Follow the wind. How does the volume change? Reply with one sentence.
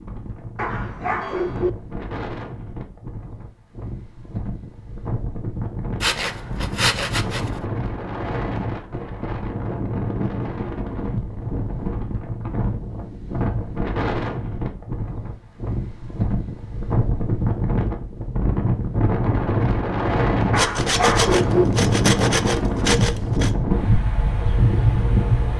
The volume of the wind goes up.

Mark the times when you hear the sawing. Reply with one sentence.
The sawing can be heard from 6.0 to 7.6 s and from 20.6 to 23.5 s.